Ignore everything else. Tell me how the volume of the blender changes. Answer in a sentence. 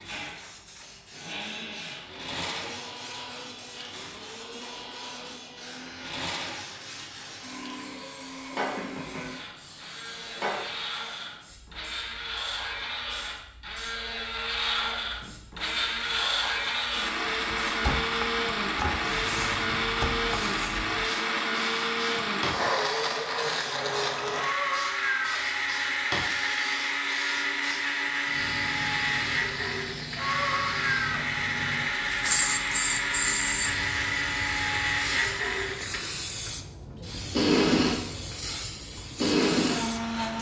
The loudness of the blender goes up.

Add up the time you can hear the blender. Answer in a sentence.
You can hear the blender for 40 seconds altogether.